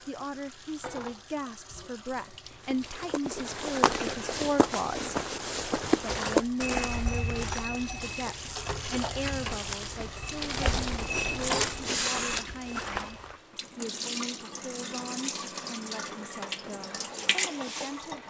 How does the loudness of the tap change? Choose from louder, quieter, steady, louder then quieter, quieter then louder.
louder.